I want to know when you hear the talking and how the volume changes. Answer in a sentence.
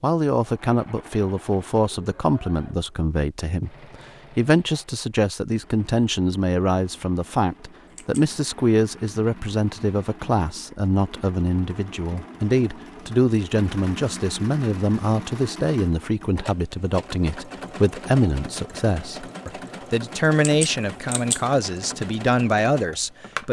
The talking can be heard from 0.0 to 23.4 s, at a steady volume.